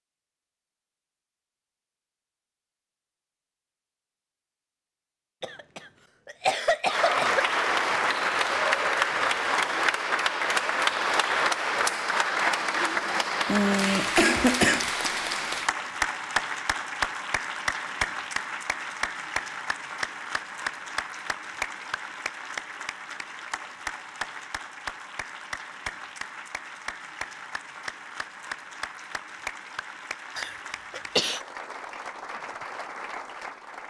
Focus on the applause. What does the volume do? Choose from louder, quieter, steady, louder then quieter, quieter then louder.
quieter.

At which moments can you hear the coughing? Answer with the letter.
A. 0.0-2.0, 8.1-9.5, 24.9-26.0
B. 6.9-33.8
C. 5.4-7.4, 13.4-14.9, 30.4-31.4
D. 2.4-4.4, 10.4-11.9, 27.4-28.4
C.